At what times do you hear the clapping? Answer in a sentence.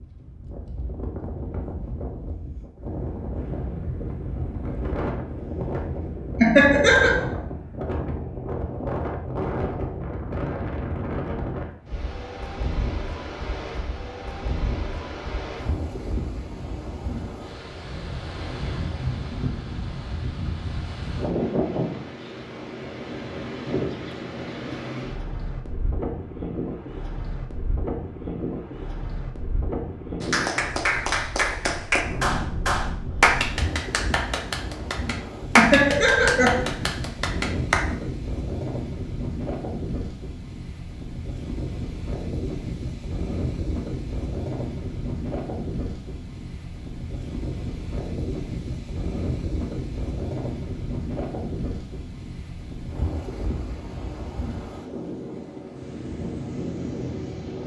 The clapping can be heard from 30.2 to 37.9 s.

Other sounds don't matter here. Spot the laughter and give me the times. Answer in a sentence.
The laughter can be heard from 6.4 to 7.2 s and from 35.5 to 36.6 s.